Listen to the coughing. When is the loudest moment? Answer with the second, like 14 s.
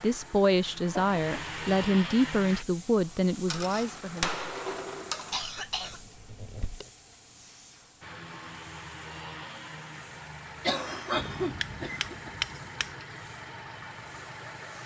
11 s.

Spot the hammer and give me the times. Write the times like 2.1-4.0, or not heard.
3.5-5.4, 11.2-12.9.